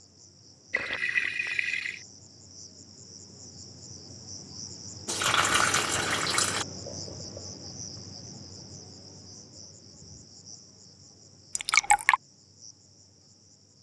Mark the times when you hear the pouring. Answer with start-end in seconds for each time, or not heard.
0.7-2.0, 5.0-6.7, 11.6-12.2.